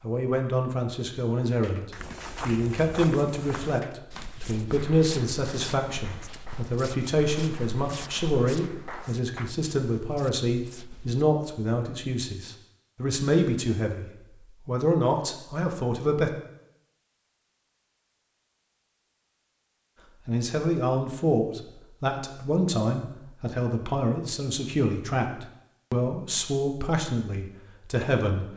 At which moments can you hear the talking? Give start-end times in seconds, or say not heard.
0.0-16.3, 20.2-28.4.